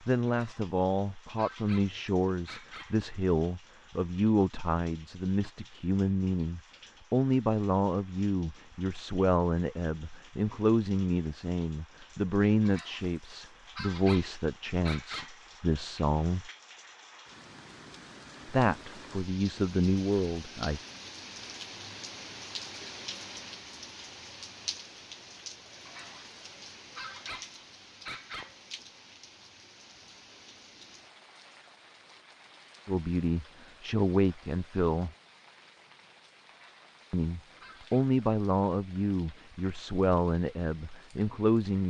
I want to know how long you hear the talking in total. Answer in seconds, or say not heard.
26 s.